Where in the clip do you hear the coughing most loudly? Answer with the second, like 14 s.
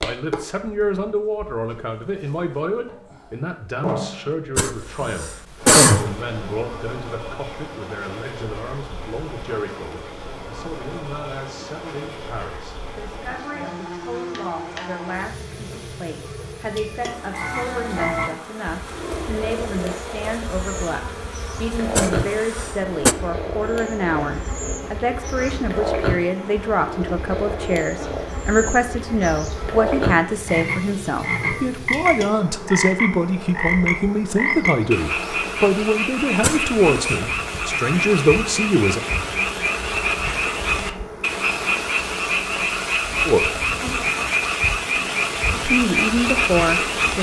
6 s.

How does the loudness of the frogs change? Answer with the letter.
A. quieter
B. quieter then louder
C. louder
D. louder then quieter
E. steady
C.